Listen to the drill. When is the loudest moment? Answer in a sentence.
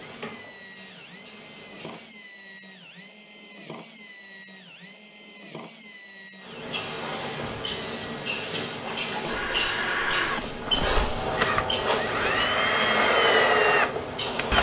The loudest moment of the drill is at 13 seconds.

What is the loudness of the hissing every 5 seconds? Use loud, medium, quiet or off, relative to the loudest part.
quiet, loud, loud.